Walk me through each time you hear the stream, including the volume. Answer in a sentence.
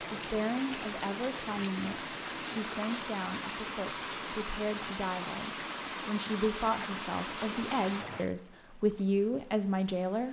The stream can be heard from 0.0 to 10.2 s, getting quieter.